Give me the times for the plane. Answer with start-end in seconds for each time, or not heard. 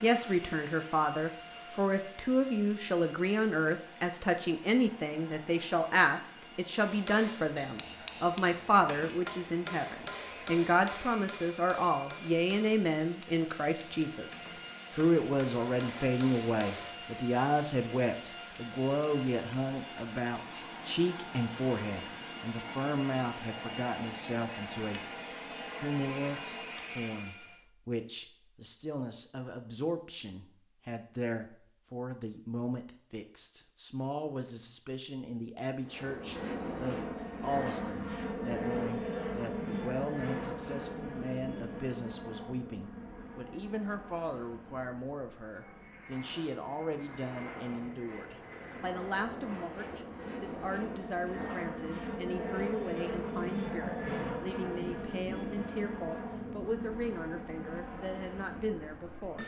0.0-27.6, 35.8-59.4.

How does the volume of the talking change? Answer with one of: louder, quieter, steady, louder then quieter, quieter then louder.
quieter.